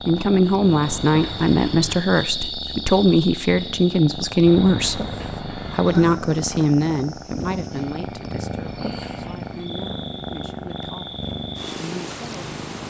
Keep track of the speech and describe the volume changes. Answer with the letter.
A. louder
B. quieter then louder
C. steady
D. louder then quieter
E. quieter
E.